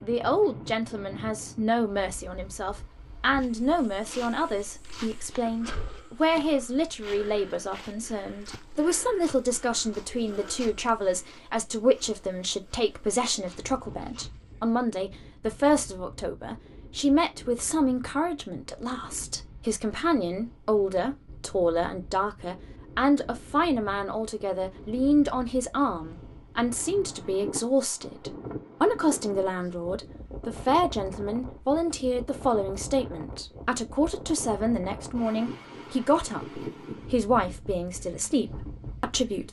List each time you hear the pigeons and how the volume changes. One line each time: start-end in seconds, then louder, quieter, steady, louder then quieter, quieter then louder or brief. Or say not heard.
not heard.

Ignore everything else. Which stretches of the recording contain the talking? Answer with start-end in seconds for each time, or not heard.
0.0-39.4.